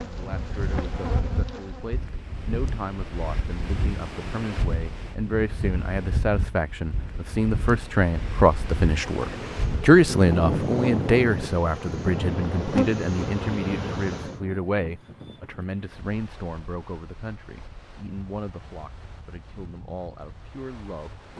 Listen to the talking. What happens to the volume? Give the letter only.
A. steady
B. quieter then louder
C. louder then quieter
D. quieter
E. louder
C.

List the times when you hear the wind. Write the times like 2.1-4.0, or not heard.
0.0-21.3.